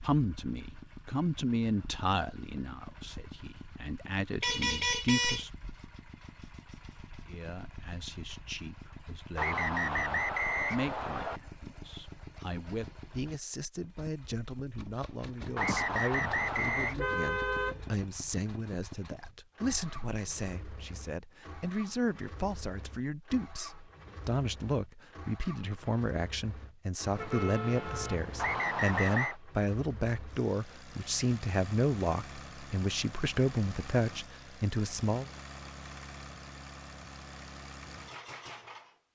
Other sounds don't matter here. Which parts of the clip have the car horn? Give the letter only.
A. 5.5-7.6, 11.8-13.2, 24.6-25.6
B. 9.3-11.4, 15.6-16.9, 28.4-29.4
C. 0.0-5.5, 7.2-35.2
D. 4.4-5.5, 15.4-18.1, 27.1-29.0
D.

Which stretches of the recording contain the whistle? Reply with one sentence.
The whistle can be heard from 9.3 to 11.4 s, from 15.6 to 16.9 s and from 28.4 to 29.4 s.